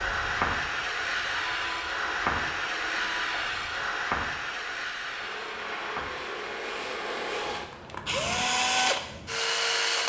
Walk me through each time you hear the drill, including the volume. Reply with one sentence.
The drill can be heard from 0.0 to 10.0 s, getting louder.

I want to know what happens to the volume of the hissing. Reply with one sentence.
The volume of the hissing goes down.